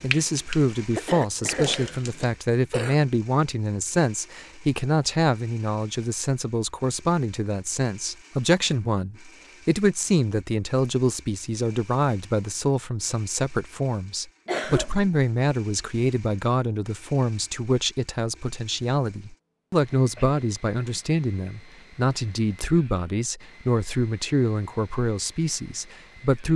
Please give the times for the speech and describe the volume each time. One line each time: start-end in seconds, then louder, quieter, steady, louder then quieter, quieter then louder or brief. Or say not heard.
0.0-26.5 steady.